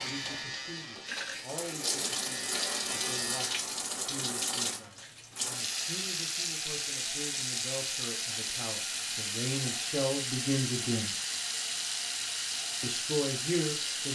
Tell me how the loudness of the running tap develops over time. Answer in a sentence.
The loudness of the running tap stays about the same.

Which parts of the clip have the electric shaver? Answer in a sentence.
You can hear the electric shaver from 0.0 to 3.6 s.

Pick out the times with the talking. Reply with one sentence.
You can hear the talking from 0.0 to 11.2 s and from 12.8 to 14.0 s.